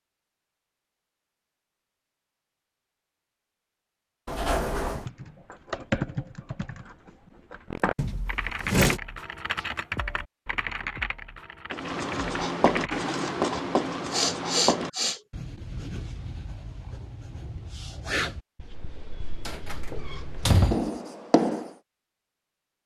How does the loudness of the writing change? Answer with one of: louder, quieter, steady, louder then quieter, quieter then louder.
quieter then louder.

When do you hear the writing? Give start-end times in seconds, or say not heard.
11.7-21.8.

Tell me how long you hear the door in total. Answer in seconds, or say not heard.
3 s.